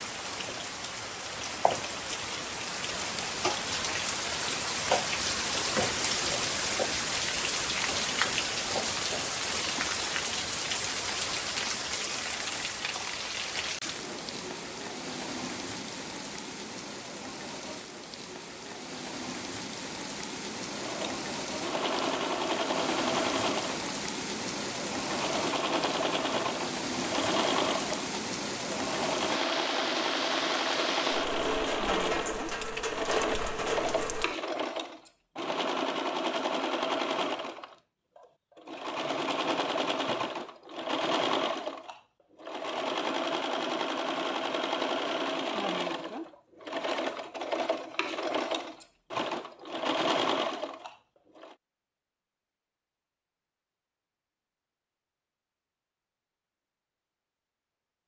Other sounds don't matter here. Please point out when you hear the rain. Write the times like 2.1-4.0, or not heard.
0.0-34.4.